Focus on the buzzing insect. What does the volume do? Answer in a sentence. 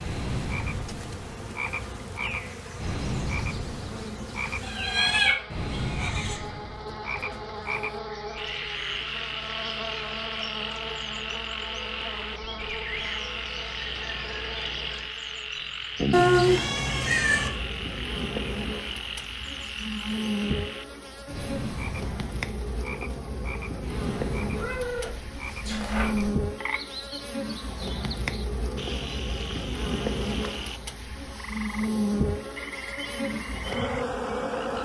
The loudness of the buzzing insect goes up.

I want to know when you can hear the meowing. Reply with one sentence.
The meowing can be heard from 4.6 to 6.3 s, from 16.1 to 17.5 s and from 24.6 to 26.4 s.